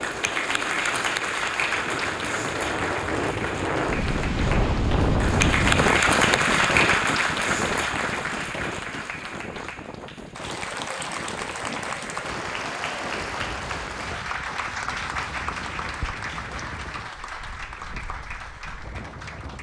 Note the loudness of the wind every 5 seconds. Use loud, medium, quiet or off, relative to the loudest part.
loud, loud, quiet, quiet.